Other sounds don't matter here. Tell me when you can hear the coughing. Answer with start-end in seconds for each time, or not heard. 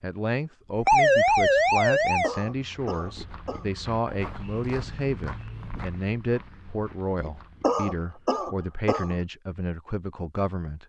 2.2-3.6, 7.6-9.2.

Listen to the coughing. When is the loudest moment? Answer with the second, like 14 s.
8 s.